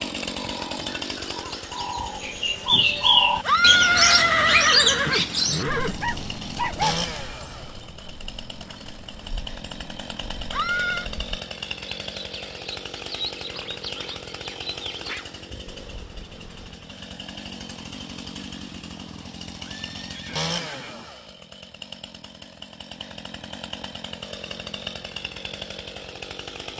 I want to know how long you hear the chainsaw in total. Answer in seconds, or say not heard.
27 s.